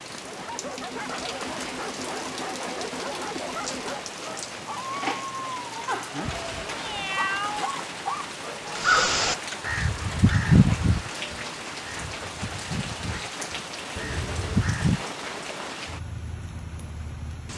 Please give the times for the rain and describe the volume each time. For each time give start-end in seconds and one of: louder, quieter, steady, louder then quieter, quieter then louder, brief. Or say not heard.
0.0-17.5 steady.